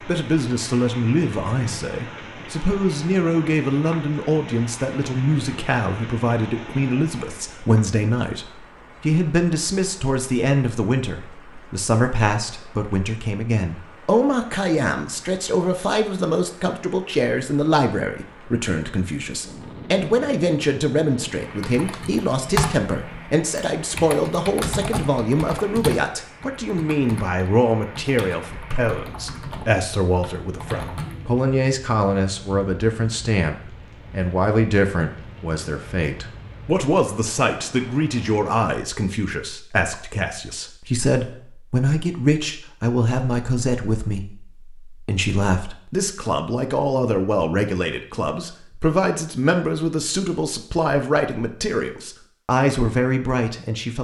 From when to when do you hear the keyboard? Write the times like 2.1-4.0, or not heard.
21.4-31.1.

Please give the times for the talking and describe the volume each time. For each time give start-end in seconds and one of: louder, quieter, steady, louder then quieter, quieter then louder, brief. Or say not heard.
0.0-53.9 steady.